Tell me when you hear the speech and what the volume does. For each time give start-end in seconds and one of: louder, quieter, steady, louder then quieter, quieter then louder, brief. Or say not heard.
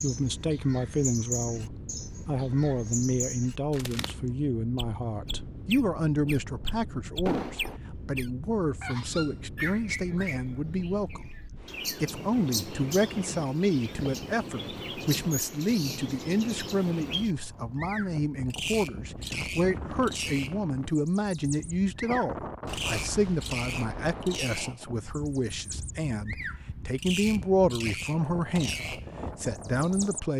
0.0-30.3 steady.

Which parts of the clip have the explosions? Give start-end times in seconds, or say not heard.
7.2-7.8, 22.6-24.7.